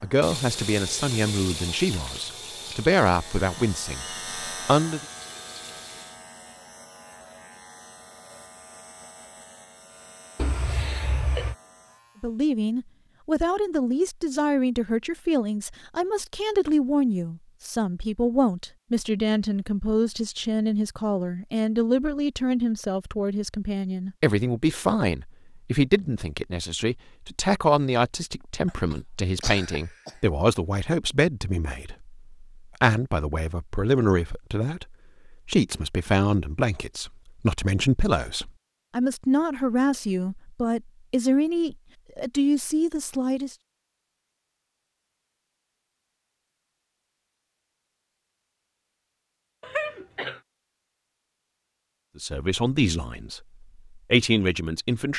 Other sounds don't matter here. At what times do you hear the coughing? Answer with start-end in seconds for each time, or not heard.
10.3-11.6, 28.6-30.3, 49.6-50.4.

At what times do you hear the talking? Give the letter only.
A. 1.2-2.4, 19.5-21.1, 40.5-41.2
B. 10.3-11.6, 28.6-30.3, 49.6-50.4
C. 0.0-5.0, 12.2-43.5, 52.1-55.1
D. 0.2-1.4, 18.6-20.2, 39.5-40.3
C.